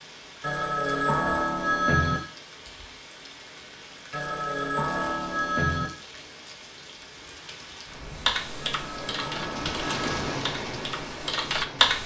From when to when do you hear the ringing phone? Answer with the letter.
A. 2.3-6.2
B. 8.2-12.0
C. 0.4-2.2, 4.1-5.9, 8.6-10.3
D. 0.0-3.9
C.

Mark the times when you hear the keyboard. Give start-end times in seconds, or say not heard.
8.2-12.0.